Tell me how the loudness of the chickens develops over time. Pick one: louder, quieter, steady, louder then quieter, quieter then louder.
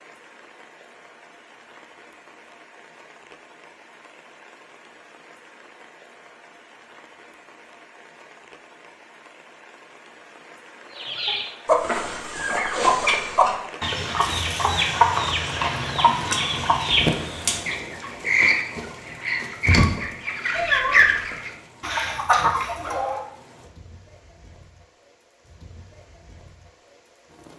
steady.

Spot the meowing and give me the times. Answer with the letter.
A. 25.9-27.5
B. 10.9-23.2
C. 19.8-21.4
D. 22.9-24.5
C.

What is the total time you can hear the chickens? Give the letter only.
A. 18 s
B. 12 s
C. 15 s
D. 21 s
B.